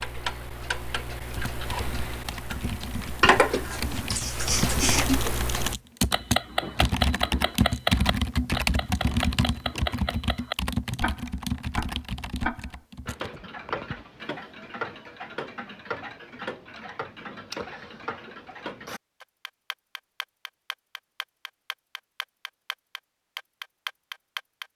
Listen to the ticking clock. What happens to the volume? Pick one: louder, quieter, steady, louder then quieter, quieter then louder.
quieter.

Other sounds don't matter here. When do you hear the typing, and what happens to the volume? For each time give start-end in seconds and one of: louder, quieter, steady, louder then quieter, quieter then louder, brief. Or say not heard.
1.2-13.4 louder then quieter.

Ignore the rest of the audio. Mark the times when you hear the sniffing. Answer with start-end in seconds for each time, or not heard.
3.6-5.2.